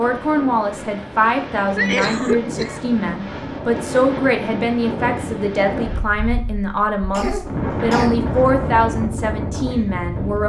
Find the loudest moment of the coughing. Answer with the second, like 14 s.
2 s.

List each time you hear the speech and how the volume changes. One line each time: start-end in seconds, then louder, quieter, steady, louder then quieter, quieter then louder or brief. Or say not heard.
0.0-10.4 steady.